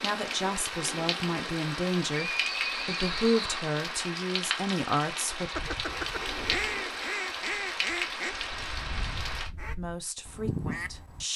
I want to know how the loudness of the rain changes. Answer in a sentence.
The loudness of the rain stays about the same.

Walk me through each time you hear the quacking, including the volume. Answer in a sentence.
You can hear the quacking from 5.5 to 11.2 s, getting quieter then louder.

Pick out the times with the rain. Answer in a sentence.
You can hear the rain from 0.0 to 9.5 s.